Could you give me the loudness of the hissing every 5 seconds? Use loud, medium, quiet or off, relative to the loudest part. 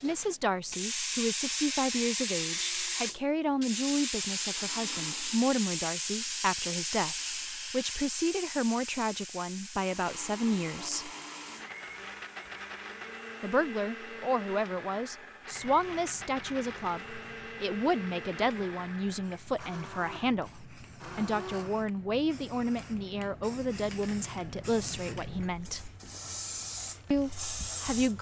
loud, loud, quiet, quiet, quiet, medium.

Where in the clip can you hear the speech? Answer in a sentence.
The speech can be heard from 0.0 to 11.1 s, from 13.4 to 25.9 s and from 27.1 to 28.1 s.